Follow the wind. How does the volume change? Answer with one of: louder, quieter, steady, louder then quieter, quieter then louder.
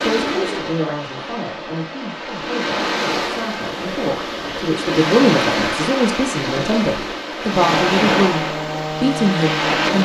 louder.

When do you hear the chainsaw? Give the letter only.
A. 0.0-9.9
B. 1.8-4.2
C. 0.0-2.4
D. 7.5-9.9
D.